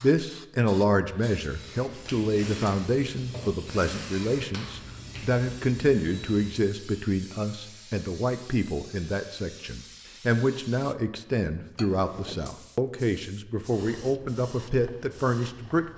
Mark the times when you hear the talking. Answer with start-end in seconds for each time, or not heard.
0.0-15.8.